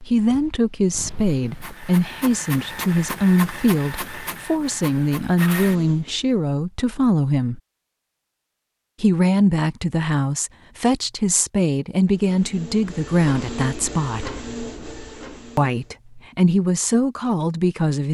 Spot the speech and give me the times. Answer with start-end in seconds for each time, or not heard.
0.1-7.6, 9.0-14.3, 15.6-18.0.